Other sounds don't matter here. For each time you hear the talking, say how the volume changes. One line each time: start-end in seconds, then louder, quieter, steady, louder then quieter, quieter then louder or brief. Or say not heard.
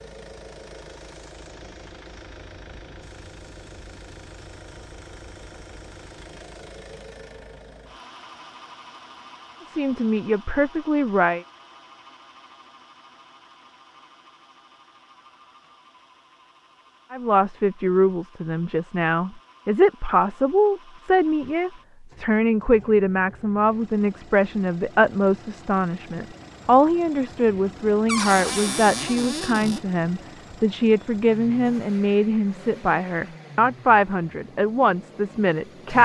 9.7-11.4 brief
17.1-36.0 steady.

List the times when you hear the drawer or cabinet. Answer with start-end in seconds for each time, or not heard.
28.1-29.8.